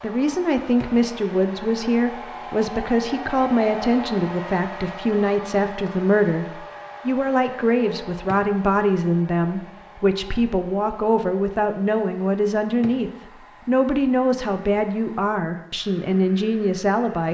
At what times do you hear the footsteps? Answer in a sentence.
The footsteps can't be heard in this clip.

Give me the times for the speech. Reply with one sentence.
You can hear the speech from 0.0 to 17.2 s.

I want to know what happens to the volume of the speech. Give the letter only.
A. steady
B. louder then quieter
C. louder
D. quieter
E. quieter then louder
A.